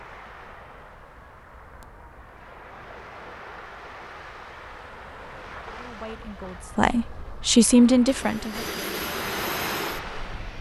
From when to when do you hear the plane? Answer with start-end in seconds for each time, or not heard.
8.1-10.5.